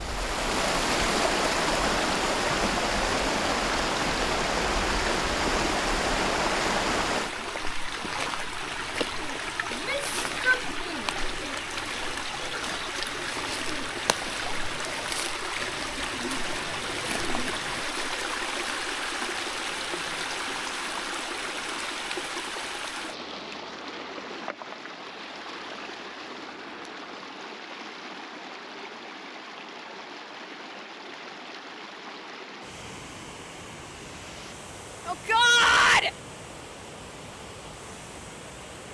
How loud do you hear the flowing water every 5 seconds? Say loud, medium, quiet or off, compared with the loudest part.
loud, loud, medium, medium, medium, quiet, quiet, quiet.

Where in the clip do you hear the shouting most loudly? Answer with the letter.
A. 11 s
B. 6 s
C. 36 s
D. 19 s
C.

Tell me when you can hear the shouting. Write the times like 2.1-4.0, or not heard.
9.7-11.1, 35.0-36.1.